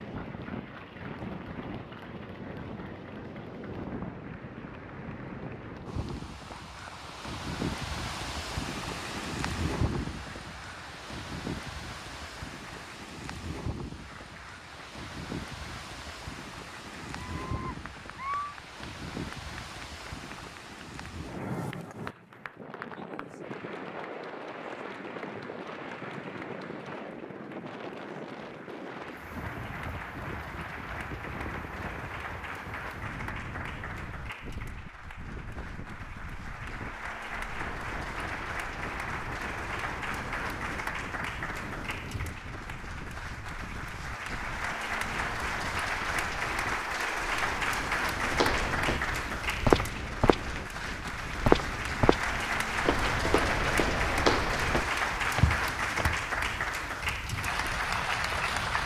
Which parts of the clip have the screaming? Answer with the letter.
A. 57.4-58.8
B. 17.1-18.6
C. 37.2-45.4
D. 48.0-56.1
B.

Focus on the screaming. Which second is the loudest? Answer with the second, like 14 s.
18 s.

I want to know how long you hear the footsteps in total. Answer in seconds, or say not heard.
8 s.